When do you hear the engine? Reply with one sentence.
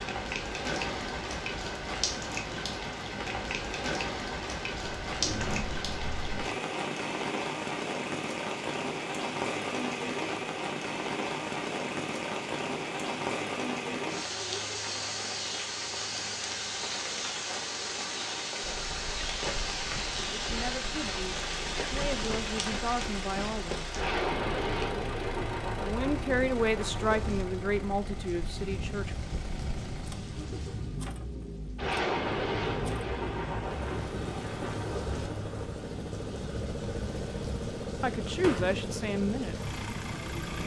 You can hear the engine from 18.6 to 40.6 s.